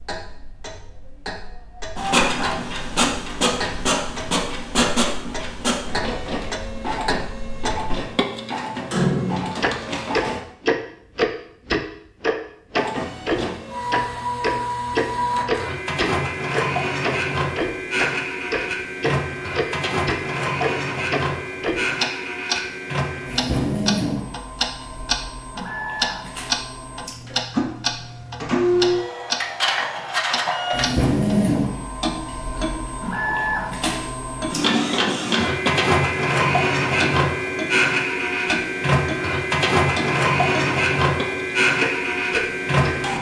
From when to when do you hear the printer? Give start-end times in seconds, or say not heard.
1.9-10.4, 12.8-43.1.